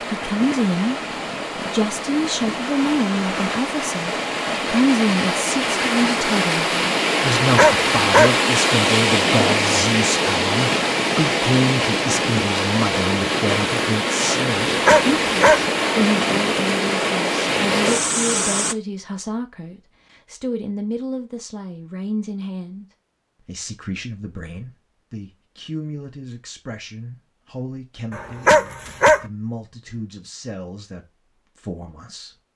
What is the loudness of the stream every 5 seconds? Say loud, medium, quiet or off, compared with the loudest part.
medium, loud, loud, loud, off, off, off.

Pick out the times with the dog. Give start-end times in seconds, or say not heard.
7.4-8.3, 14.7-15.7, 28.1-29.2.